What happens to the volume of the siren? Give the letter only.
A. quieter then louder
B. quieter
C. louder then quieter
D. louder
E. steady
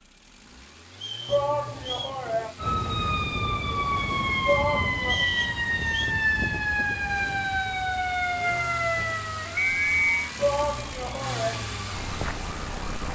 B.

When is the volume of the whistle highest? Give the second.
10 s.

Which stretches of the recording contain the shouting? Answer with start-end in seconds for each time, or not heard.
1.2-2.5, 4.5-5.3, 10.3-11.6.